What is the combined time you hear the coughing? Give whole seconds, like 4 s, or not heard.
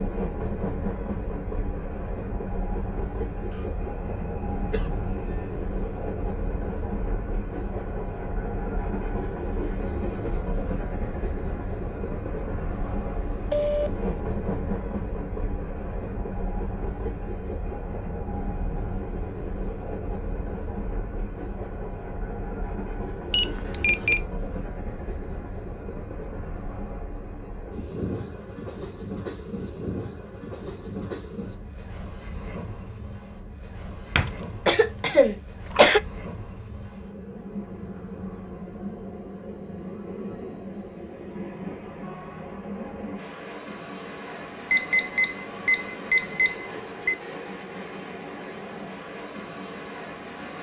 4 s.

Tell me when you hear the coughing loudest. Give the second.
36 s.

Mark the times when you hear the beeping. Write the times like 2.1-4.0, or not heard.
12.8-14.1, 23.3-24.2, 44.7-47.1.